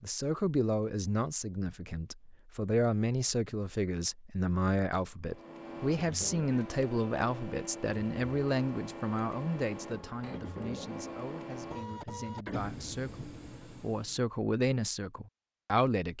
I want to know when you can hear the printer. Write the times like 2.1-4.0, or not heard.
5.2-14.2.